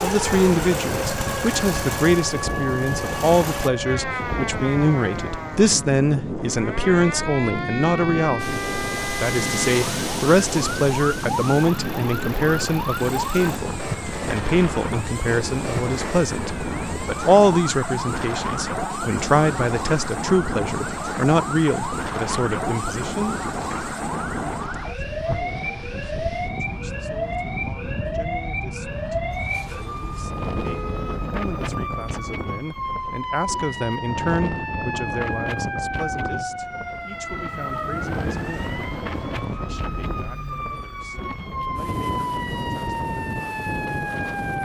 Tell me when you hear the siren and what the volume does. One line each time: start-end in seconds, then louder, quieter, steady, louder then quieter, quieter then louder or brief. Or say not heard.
0.0-44.5 steady.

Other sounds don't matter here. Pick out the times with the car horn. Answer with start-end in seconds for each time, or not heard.
29.3-31.3.